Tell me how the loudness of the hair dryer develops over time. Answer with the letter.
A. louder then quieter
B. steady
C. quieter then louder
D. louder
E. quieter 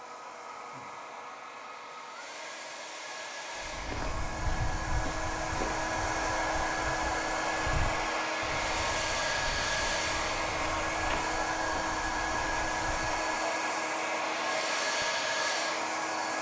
D.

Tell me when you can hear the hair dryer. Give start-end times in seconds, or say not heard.
0.0-16.3.